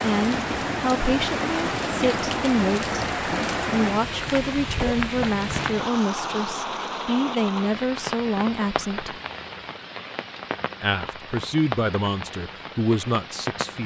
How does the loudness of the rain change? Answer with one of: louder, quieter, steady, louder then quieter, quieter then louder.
quieter.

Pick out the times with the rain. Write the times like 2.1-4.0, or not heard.
0.0-13.8.